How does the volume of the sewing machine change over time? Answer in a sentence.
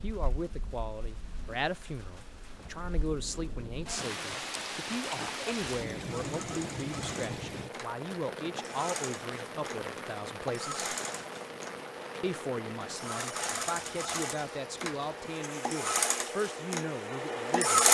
The volume of the sewing machine goes up.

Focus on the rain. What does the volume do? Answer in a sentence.
The loudness of the rain goes up, then down.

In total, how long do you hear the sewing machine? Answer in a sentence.
You can hear the sewing machine for 12 seconds altogether.